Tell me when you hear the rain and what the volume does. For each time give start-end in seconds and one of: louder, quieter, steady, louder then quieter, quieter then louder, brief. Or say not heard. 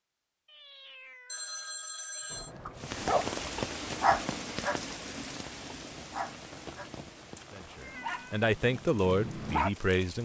2.8-10.2 quieter.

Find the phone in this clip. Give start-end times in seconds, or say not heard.
1.2-2.5.